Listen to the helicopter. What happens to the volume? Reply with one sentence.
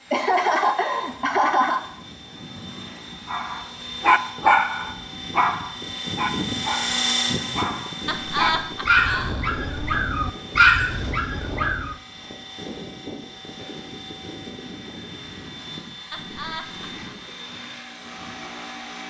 The volume of the helicopter goes up, then down.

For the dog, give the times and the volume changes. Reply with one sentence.
You can hear the dog from 3.3 to 11.9 s, getting quieter then louder.